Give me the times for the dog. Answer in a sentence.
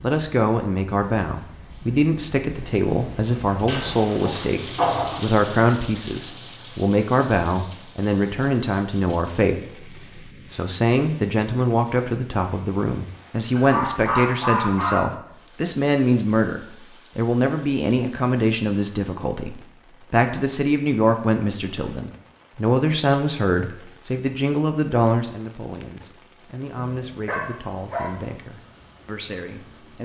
You can hear the dog from 3.6 to 5.2 s, from 13.6 to 15.1 s and from 26.8 to 28.2 s.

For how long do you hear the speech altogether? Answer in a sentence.
You can hear the speech for 30 seconds altogether.